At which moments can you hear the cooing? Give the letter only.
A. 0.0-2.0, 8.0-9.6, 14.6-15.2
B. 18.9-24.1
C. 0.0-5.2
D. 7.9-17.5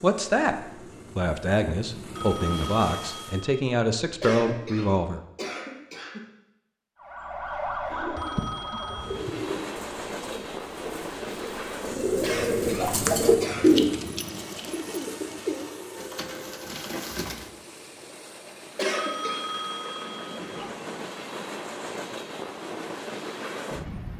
D.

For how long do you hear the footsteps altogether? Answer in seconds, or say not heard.
not heard.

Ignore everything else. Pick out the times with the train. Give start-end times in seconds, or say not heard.
0.0-3.5, 8.9-24.1.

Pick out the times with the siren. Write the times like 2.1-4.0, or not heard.
7.0-9.2.